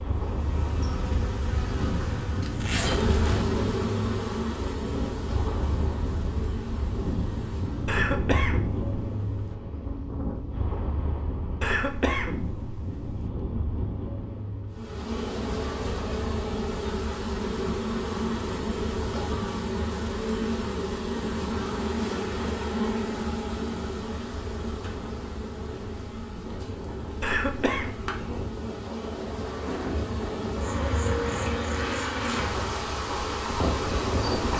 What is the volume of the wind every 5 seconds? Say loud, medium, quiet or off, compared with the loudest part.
loud, loud, loud, medium, medium, medium, loud.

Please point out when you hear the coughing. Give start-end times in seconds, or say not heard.
7.8-9.6, 11.6-13.2, 27.2-27.9.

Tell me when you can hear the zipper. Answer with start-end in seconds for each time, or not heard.
2.4-3.5.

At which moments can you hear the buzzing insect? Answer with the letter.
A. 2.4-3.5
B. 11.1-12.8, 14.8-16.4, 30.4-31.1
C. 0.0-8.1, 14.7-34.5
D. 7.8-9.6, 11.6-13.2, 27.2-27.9
C.